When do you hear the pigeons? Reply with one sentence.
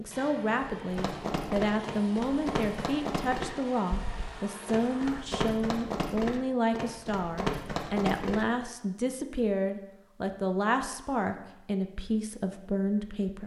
You can't hear the pigeons here.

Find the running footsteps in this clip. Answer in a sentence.
The running footsteps can be heard from 0.9 to 8.4 s.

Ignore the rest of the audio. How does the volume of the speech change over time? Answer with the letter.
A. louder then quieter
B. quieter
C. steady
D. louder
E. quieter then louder
C.